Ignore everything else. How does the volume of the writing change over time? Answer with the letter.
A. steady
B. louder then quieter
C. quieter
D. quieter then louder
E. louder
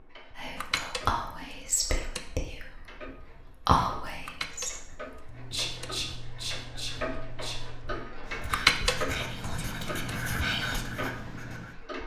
E.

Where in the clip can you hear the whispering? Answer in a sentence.
The whispering can be heard from 0.3 to 10.8 s.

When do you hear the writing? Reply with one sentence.
The writing can be heard from 5.2 to 11.8 s.